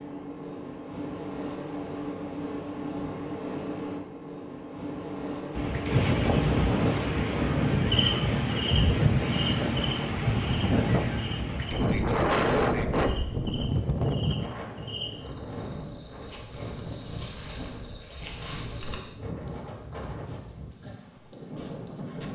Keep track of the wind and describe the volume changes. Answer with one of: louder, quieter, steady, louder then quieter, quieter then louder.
quieter.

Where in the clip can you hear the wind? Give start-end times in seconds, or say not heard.
5.5-22.3.